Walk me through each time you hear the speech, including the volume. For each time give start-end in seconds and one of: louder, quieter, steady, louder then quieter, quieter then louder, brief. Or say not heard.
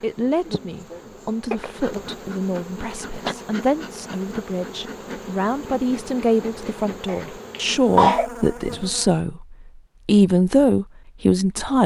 0.0-11.8 louder.